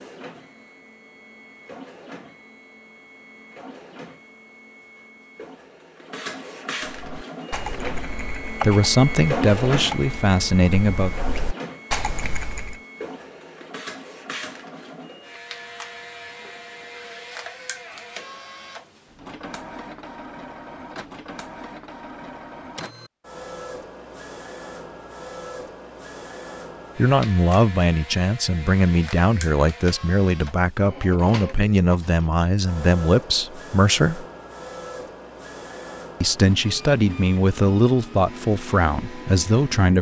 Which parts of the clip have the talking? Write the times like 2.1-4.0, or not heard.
8.6-11.1, 26.9-34.2, 36.2-39.9.